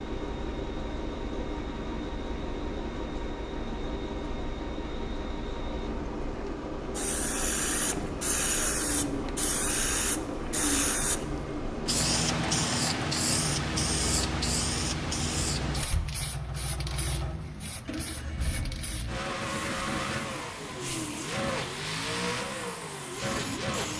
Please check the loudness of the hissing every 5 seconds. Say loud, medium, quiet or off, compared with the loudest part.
off, loud, loud, medium, quiet.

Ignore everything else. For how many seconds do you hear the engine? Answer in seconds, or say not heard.
24 s.